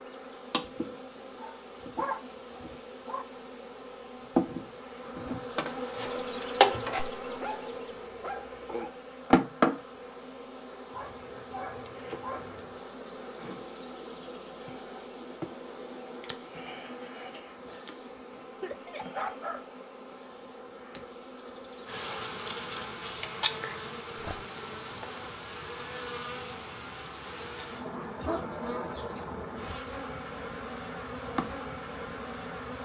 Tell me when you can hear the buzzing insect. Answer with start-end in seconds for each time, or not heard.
0.0-32.8.